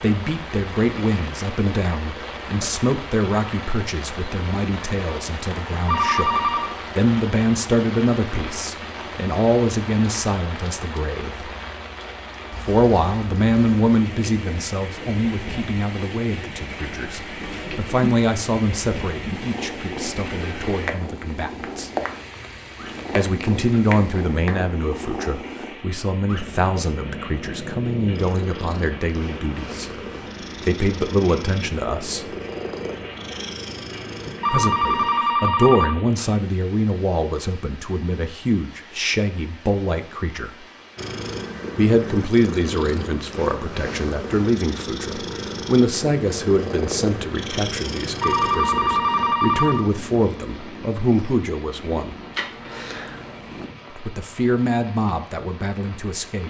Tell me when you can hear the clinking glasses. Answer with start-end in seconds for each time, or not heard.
not heard.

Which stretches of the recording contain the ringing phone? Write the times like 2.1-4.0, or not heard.
5.7-6.8, 34.2-36.0, 48.0-49.9.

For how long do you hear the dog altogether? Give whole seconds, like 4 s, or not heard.
not heard.